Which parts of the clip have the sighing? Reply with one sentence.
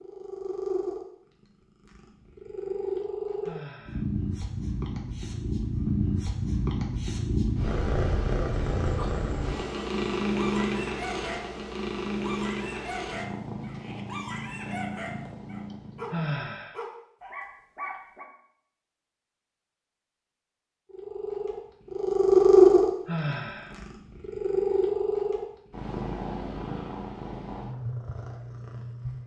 The sighing can be heard from 3.4 to 4.0 s, from 16.1 to 16.8 s and from 23.1 to 23.8 s.